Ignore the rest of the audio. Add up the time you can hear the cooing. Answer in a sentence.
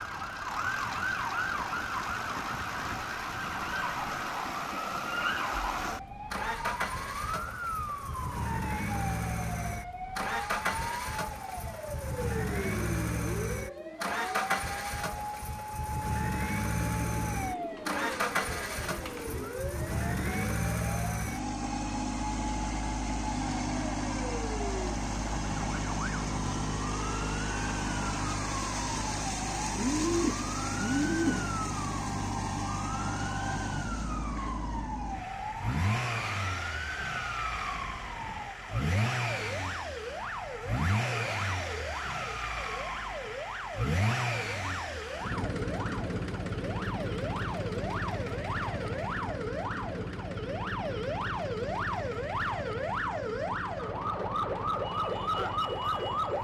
The cooing can be heard for 5 seconds in total.